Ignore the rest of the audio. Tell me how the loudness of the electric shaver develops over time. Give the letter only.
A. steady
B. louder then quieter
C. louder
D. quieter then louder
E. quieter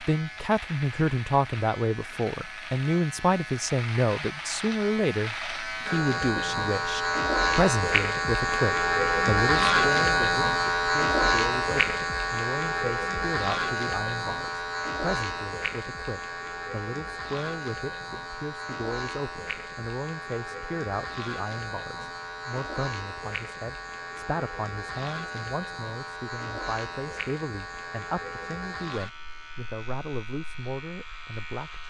B.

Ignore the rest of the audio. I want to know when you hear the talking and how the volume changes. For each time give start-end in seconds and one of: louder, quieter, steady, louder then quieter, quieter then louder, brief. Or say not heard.
0.0-31.8 quieter.